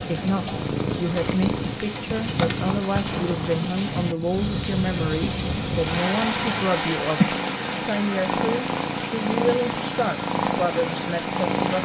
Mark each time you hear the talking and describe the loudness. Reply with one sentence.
You can hear the talking from 0.0 to 11.8 s, at a steady volume.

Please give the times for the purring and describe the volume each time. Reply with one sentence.
You can hear the purring from 0.0 to 11.8 s, getting quieter then louder.